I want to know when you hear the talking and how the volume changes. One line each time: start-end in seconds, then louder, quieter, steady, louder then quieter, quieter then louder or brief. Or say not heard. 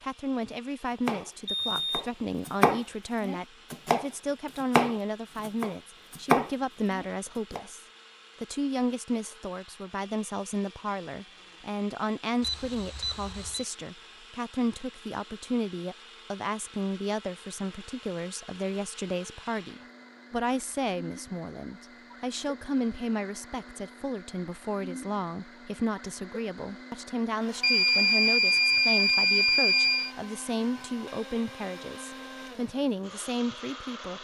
0.0-34.1 steady.